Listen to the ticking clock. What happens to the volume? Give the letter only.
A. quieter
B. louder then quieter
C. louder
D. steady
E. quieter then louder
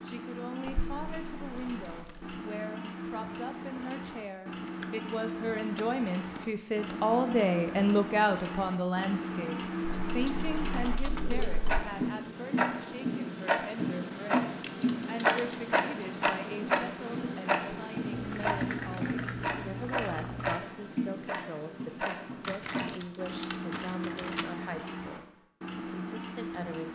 B.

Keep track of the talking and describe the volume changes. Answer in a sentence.
The volume of the talking goes up, then down.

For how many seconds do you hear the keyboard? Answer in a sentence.
The keyboard can be heard for 11 seconds in total.